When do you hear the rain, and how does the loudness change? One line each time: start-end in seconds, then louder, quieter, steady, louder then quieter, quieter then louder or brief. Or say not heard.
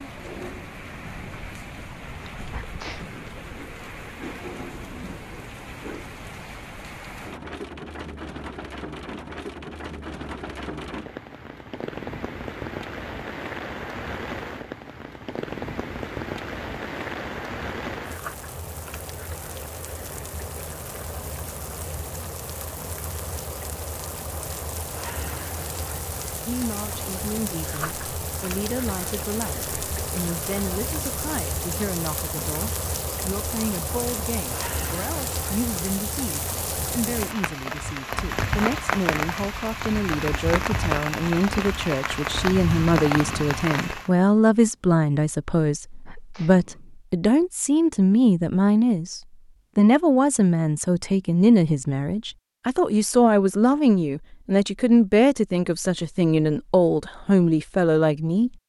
0.0-44.1 louder.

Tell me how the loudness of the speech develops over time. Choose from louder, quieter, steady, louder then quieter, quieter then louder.
louder.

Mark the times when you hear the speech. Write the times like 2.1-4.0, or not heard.
26.4-58.5.